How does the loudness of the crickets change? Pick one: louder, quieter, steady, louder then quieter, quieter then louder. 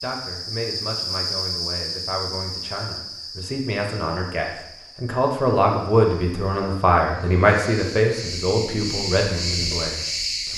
quieter then louder.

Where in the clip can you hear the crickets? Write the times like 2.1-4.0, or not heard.
0.0-10.5.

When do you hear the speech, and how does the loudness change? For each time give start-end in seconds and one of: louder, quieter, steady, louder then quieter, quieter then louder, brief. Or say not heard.
0.0-10.5 louder then quieter.